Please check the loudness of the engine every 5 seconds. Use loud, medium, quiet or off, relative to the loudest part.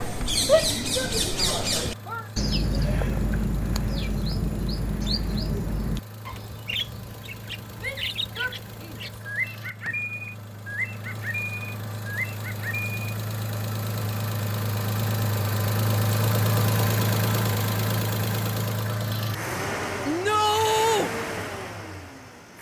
quiet, quiet, medium, loud, medium.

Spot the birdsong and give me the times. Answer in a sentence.
You can hear the birdsong from 0.0 to 12.9 s.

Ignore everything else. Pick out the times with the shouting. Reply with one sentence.
The shouting can be heard from 0.5 to 2.2 s, from 7.8 to 9.1 s and from 20.1 to 21.1 s.